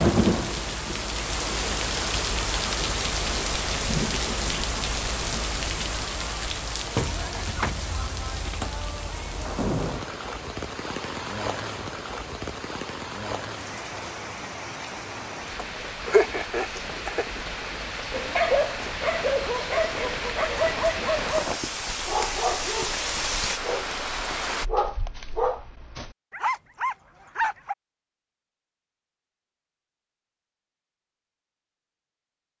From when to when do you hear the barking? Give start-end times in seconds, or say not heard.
18.1-27.8.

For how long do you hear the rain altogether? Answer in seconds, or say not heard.
25 s.